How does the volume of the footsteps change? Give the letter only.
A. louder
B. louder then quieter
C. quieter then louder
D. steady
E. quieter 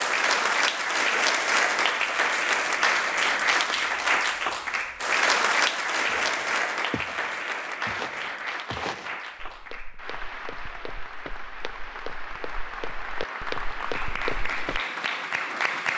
C.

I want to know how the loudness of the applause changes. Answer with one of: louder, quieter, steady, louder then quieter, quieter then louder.
quieter then louder.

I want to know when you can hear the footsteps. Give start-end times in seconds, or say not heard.
6.1-14.8.